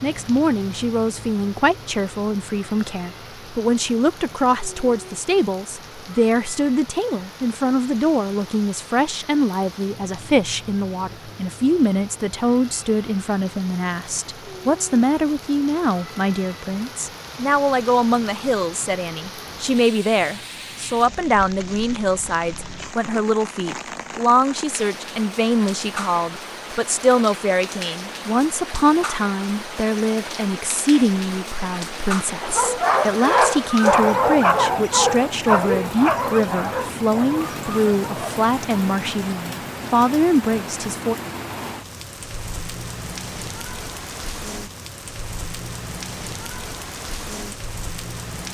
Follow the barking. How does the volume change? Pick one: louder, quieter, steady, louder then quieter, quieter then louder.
quieter.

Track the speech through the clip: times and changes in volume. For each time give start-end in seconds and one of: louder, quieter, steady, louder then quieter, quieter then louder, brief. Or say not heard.
0.0-41.1 steady.